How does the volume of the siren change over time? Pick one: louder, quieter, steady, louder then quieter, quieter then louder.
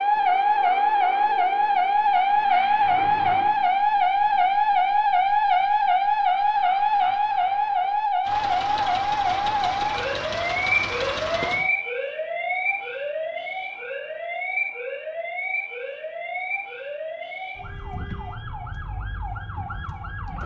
quieter.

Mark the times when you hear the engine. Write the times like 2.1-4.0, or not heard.
8.2-11.7.